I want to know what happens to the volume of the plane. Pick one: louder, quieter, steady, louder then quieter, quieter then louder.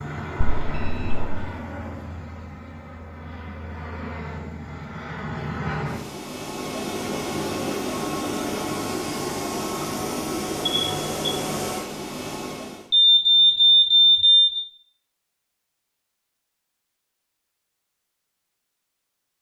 louder.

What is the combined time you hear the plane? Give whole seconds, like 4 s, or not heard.
13 s.